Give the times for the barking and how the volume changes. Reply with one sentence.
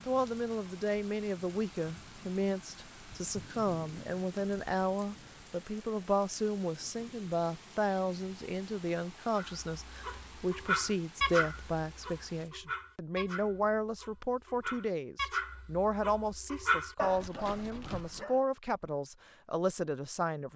You can hear the barking from 9.3 to 18.4 s, getting quieter then louder.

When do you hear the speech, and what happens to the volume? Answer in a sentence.
The speech can be heard from 0.1 to 20.5 s, at a steady volume.